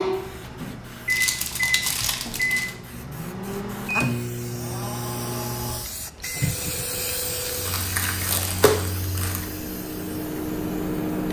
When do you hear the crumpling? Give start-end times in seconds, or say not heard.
1.1-2.7, 7.5-9.4.